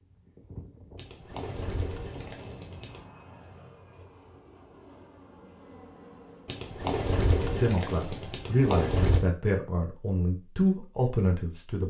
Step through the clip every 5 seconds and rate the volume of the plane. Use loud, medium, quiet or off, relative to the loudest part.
loud, loud, off.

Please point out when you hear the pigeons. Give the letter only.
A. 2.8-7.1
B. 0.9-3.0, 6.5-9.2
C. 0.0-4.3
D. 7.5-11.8
B.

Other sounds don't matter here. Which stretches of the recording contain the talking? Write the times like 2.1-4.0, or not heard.
7.5-11.8.